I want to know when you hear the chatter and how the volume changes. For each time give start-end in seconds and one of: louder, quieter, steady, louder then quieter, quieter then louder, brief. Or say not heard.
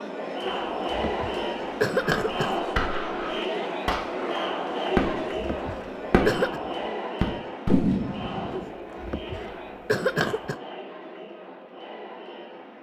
0.0-12.7 quieter.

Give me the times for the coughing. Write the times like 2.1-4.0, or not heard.
0.5-2.6, 4.9-6.6, 8.6-10.6.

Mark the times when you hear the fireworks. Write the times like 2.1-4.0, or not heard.
1.9-5.4, 6.1-6.6, 7.2-8.7.